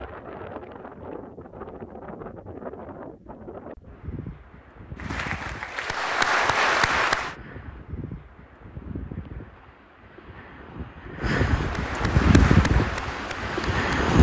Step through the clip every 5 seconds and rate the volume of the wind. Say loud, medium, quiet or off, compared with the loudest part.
quiet, quiet, loud.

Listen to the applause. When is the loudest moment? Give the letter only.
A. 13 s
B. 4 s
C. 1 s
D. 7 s
D.